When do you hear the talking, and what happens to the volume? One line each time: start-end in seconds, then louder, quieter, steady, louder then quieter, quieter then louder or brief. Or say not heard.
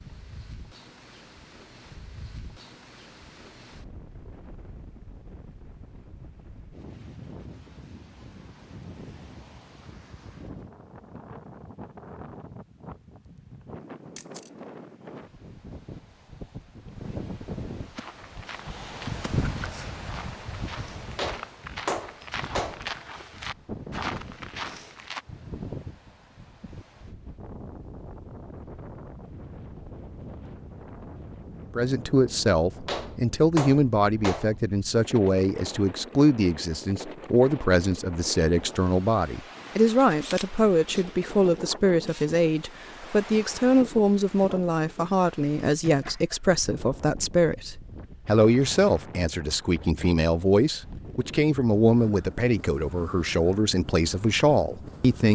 31.8-55.3 steady.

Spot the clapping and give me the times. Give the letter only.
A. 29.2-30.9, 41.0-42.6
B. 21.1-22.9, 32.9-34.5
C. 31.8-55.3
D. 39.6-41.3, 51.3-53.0
B.